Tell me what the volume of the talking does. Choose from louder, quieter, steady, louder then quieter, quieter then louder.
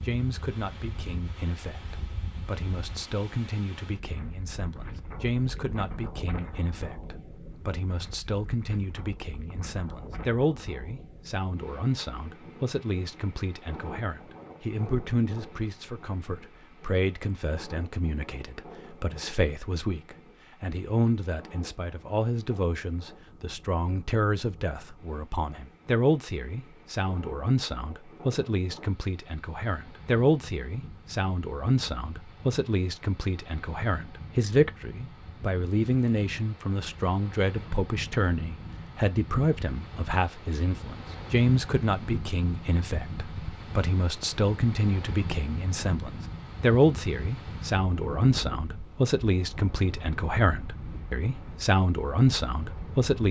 louder.